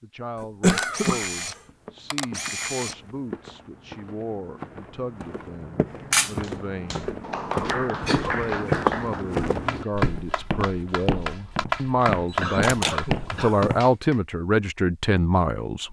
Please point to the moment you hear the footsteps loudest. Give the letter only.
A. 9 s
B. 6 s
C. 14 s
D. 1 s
A.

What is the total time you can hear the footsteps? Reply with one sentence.
The footsteps can be heard for 12 seconds in total.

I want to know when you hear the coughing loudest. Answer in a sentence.
The volume of the coughing peaks at 1 second.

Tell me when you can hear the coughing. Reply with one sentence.
The coughing can be heard from 0.4 to 1.5 s, from 8.0 to 8.5 s and from 12.4 to 13.7 s.